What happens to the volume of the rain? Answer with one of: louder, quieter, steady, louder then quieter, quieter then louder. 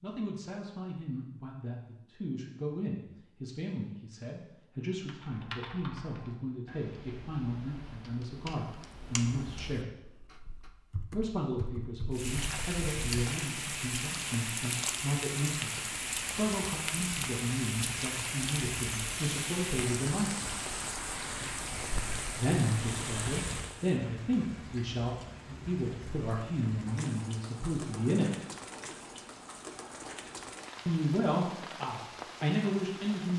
quieter.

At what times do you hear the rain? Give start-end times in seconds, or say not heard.
12.1-33.3.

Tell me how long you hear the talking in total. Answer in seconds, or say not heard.
28 s.